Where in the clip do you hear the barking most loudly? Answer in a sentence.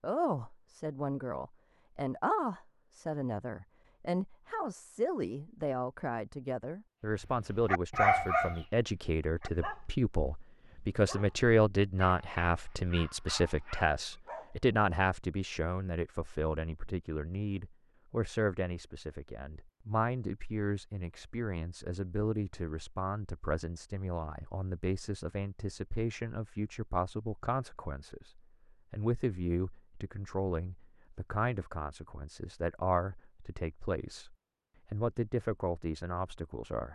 The loudest moment of the barking is at 8 seconds.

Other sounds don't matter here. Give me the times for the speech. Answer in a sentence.
The speech can be heard from 0.0 to 36.8 s.